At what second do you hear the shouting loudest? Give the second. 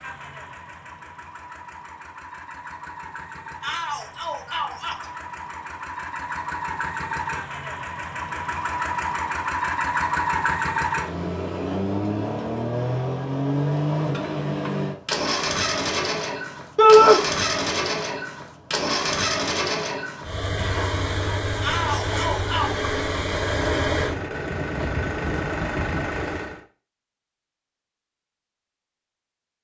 17 s.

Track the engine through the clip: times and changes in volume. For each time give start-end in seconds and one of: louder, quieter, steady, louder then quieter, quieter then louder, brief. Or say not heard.
0.0-26.6 louder.